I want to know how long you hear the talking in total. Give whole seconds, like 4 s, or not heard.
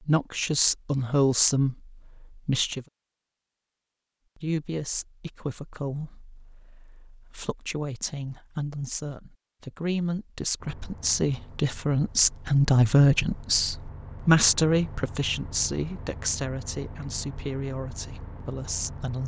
18 s.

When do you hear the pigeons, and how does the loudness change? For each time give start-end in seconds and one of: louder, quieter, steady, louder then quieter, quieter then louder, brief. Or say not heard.
not heard.